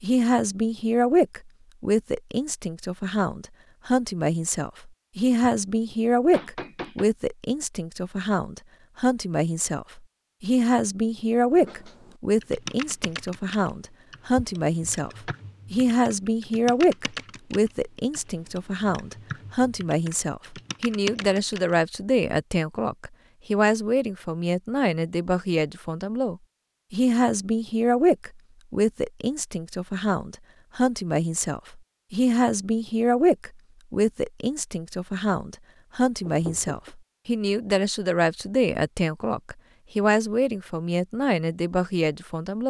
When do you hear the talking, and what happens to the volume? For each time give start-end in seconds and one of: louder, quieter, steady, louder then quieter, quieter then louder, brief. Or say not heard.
0.0-42.6 steady.